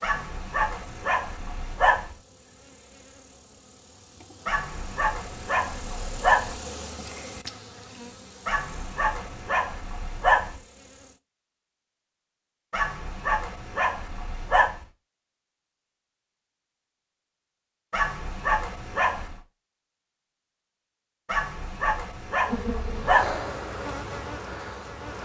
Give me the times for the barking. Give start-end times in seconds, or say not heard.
0.0-2.1, 4.5-6.6, 8.4-10.6, 12.7-14.8, 17.9-19.4, 21.2-23.4.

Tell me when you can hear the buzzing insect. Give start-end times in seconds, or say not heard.
0.1-11.2, 22.4-25.2.